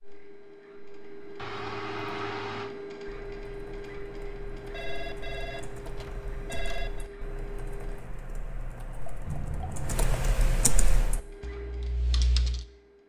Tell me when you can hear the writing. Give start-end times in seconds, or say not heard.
not heard.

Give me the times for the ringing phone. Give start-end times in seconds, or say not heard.
1.4-2.7, 4.7-7.0, 9.2-10.1.